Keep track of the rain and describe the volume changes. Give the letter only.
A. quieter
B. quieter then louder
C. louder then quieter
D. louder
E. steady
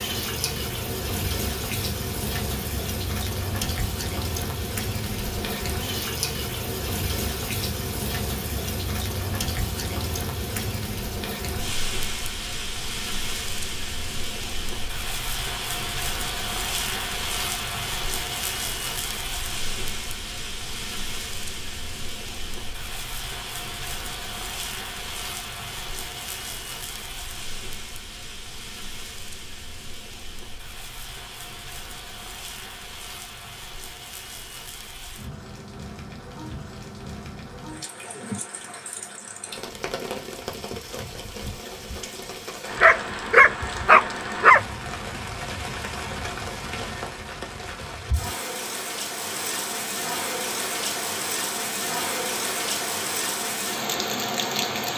B.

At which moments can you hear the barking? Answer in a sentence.
You can hear the barking from 42.8 to 44.6 s.